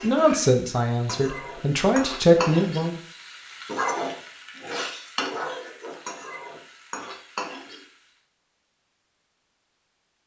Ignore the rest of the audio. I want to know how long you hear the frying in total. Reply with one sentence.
You can hear the frying for 8 seconds altogether.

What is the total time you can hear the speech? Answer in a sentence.
The speech can be heard for 3 seconds in total.